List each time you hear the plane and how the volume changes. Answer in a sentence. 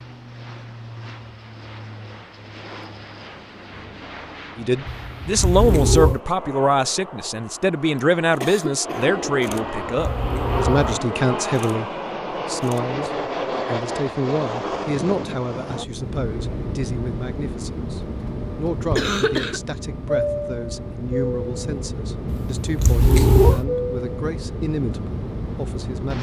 You can hear the plane from 0.0 to 26.1 s, getting louder.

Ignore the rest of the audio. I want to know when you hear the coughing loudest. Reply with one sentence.
The loudest moment of the coughing is at 19 seconds.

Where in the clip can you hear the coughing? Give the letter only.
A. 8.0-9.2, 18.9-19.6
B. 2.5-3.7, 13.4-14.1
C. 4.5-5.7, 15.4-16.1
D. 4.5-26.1
A.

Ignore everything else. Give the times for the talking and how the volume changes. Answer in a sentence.
The talking can be heard from 4.5 to 26.1 s, getting quieter.